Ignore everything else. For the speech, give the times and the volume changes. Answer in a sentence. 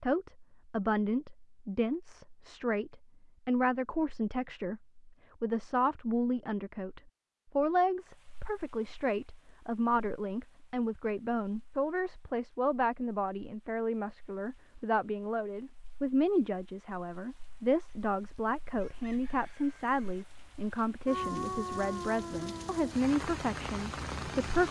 You can hear the speech from 0.0 to 24.6 s, at a steady volume.